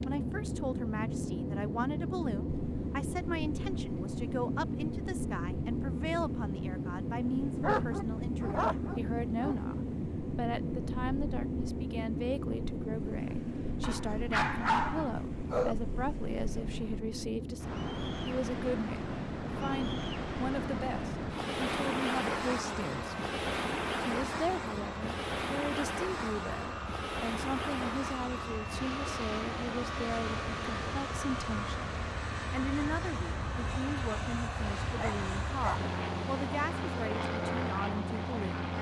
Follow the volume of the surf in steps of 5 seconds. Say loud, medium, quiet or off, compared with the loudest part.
quiet, quiet, quiet, medium, loud, loud, medium, medium.